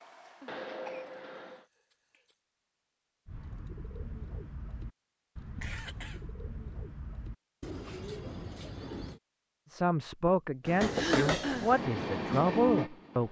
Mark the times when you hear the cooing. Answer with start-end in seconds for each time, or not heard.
3.2-9.2.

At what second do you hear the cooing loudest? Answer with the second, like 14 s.
8 s.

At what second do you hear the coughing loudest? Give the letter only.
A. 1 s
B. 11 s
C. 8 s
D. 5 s
B.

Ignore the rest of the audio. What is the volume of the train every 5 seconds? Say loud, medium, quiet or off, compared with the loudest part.
medium, off, loud.